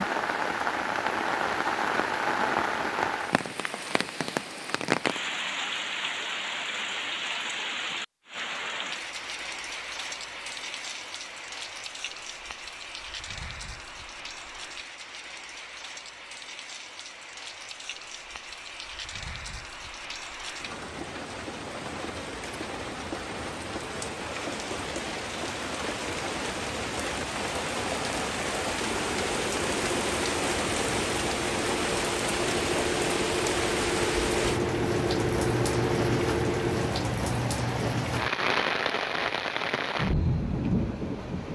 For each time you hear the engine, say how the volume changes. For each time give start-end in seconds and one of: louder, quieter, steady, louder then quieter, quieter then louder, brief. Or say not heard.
28.9-37.0 louder.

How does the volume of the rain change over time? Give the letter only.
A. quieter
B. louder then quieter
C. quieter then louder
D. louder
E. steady
C.